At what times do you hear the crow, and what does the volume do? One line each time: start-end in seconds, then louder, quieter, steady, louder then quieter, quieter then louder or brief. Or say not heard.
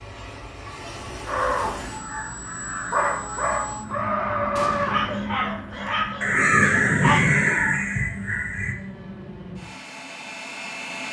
1.2-8.8 louder.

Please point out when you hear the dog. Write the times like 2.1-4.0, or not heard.
4.8-7.3.